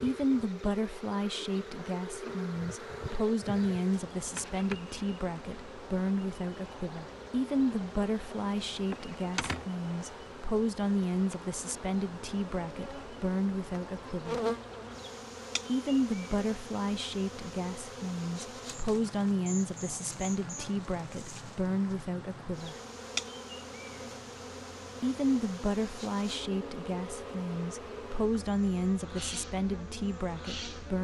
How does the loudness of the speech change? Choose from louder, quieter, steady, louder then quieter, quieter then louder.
steady.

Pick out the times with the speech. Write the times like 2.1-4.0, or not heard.
0.0-14.4, 15.7-22.8, 25.0-30.9.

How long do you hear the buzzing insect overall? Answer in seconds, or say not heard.
31 s.